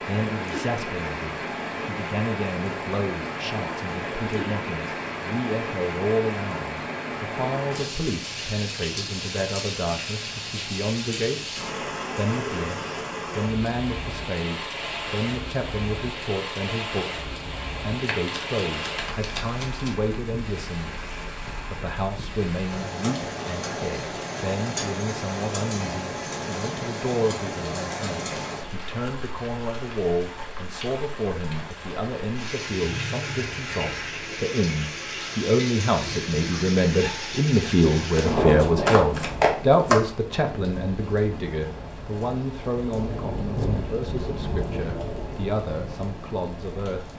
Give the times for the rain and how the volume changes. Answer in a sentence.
The rain can be heard from 0.0 to 47.1 s, at a steady volume.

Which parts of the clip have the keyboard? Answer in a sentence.
The keyboard can't be heard in this clip.